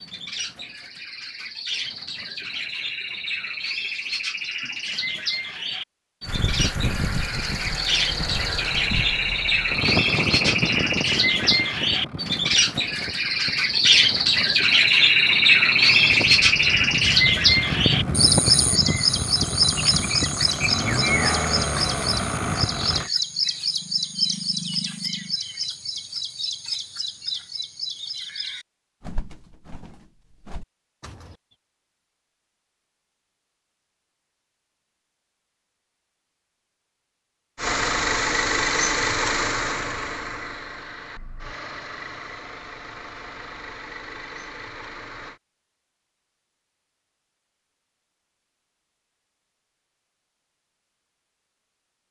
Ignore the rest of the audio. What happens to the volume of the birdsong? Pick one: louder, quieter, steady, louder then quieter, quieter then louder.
louder then quieter.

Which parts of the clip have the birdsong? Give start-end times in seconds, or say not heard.
0.0-31.4.